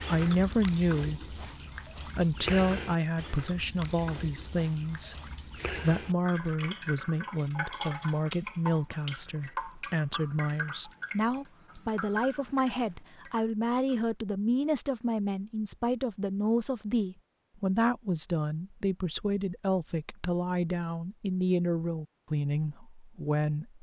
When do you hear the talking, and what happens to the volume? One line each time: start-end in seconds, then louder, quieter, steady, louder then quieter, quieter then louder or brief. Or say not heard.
0.0-1.4 brief
2.0-23.7 steady.